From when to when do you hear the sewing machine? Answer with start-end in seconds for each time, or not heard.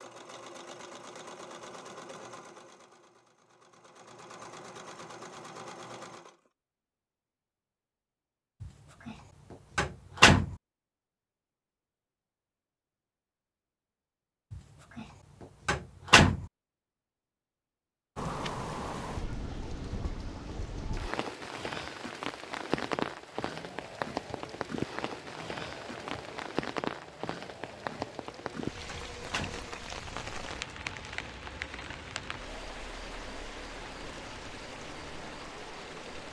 0.0-6.5, 23.1-36.2.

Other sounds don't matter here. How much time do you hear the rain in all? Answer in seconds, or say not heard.
18 s.